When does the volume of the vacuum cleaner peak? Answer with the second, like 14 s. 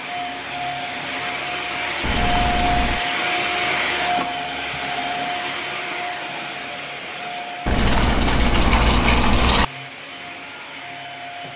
4 s.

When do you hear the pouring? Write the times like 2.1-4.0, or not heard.
2.0-3.0, 7.7-9.7.